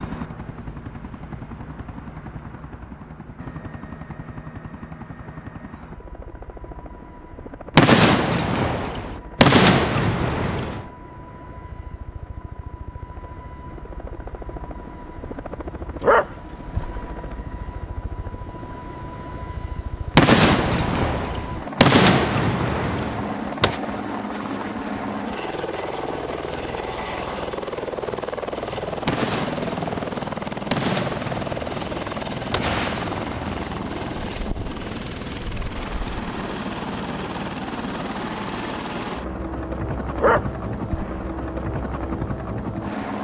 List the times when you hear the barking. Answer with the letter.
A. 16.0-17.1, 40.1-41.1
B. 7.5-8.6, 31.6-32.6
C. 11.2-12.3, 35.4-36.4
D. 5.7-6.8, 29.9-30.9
A.